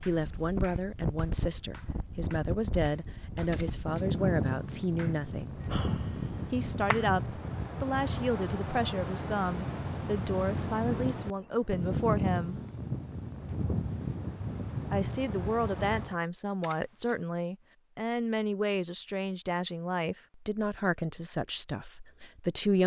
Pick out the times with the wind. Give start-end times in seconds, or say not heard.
0.0-16.1.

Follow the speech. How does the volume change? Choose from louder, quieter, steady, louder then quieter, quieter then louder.
steady.